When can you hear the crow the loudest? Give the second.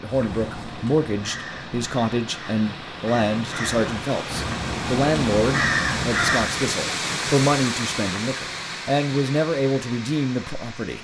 6 s.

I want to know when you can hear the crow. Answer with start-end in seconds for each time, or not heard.
0.1-6.7.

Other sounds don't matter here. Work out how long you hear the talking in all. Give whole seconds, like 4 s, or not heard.
11 s.